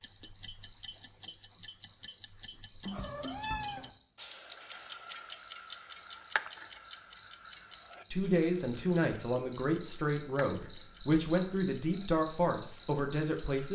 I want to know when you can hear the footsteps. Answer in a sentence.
You can't hear the footsteps here.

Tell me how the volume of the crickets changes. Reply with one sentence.
The loudness of the crickets goes up.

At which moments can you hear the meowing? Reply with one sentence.
You can hear the meowing from 2.8 to 3.9 s.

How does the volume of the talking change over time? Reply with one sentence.
The volume of the talking stays about the same.